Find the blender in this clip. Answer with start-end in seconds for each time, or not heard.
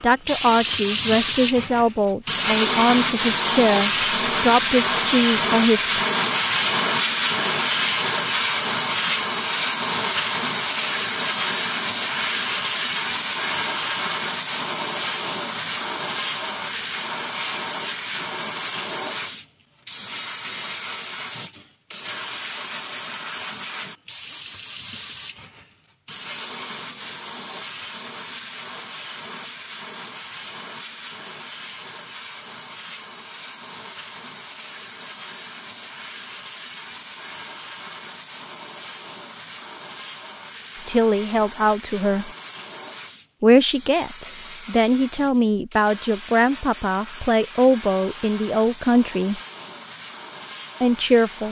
not heard.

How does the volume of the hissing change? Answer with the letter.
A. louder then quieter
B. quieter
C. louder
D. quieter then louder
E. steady
B.